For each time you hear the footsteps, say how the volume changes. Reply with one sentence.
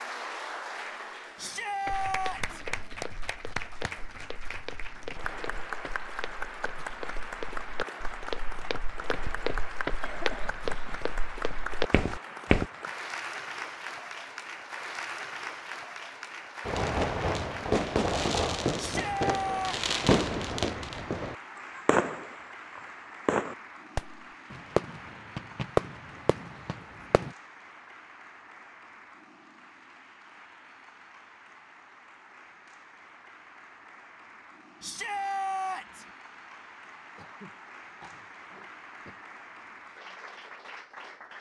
The footsteps can be heard from 1.9 to 12.7 s, getting louder.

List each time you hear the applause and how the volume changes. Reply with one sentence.
You can hear the applause from 0.0 to 41.3 s, getting quieter.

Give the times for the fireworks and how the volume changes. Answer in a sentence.
You can hear the fireworks from 16.6 to 27.3 s, at a steady volume.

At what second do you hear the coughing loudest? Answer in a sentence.
The loudest moment of the coughing is at 10 seconds.